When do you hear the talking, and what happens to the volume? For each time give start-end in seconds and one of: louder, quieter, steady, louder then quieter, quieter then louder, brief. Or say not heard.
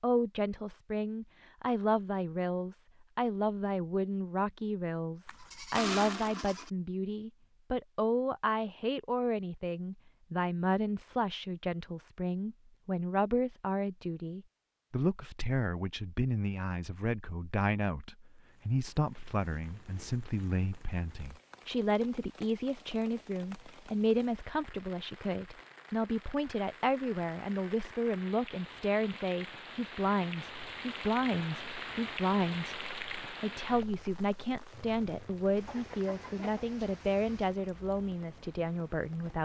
0.0-39.4 steady.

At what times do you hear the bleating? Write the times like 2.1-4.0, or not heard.
5.2-6.7.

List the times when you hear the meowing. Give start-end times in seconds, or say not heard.
not heard.